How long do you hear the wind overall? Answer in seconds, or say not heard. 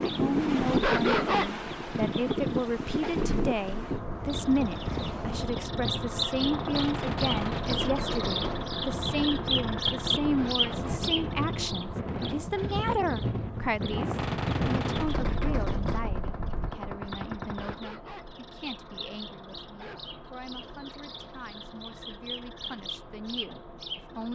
17 s.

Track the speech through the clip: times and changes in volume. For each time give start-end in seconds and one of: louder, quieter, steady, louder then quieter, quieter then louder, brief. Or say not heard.
0.0-24.3 quieter.